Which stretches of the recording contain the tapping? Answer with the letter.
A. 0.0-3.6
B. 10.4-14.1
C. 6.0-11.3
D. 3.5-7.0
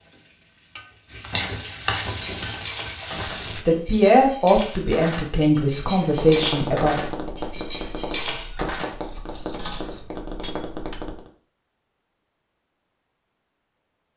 C.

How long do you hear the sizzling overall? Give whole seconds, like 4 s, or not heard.
4 s.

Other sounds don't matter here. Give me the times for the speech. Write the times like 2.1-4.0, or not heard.
3.5-7.0.